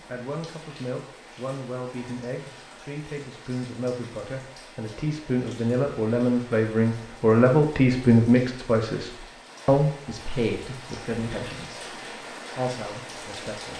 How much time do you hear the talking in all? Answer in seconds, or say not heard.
14 s.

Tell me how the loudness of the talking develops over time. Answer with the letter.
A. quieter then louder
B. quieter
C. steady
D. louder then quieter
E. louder
D.